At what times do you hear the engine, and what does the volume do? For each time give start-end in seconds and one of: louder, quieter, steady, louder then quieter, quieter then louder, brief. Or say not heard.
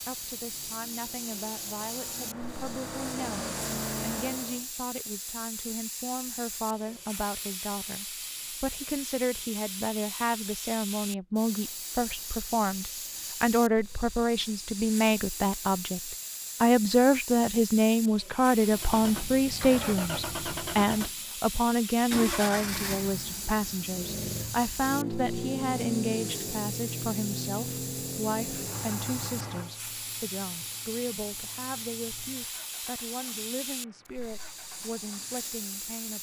0.0-4.7 louder
18.6-36.0 quieter.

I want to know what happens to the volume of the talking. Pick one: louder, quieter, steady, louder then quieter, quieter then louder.
louder then quieter.